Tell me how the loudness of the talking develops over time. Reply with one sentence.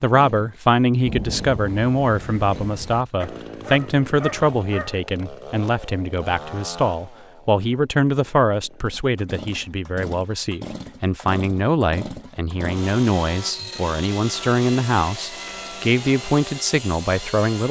The volume of the talking stays about the same.